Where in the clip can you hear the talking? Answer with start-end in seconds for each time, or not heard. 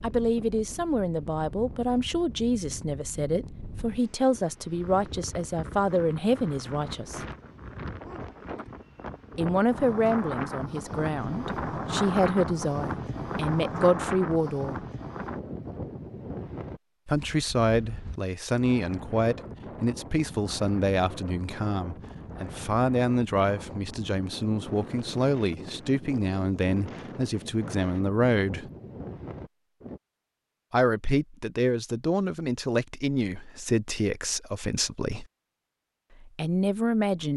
0.0-7.2, 9.3-14.8, 17.1-28.7, 30.7-35.2, 36.2-37.3.